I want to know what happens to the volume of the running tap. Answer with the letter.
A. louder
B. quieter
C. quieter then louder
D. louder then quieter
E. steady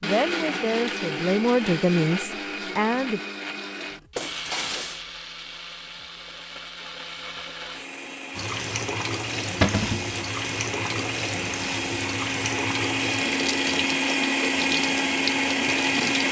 E.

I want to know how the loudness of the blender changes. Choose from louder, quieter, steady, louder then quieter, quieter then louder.
quieter then louder.